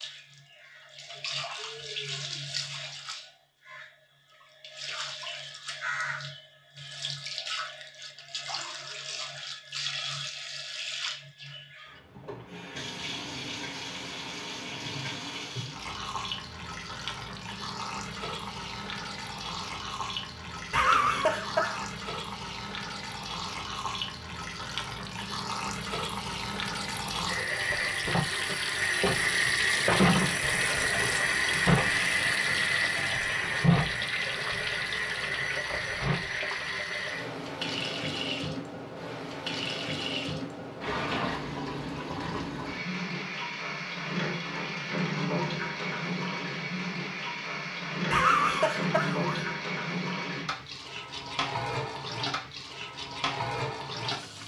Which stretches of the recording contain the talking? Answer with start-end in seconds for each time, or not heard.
not heard.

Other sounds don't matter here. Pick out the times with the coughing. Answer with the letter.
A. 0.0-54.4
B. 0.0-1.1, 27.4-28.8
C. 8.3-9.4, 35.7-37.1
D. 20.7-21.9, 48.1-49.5
D.